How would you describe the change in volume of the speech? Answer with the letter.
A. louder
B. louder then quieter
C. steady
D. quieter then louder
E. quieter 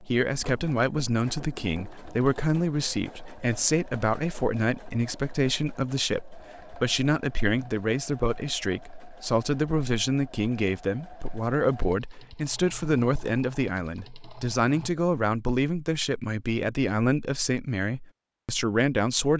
C.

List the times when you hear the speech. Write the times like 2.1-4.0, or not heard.
0.0-19.3.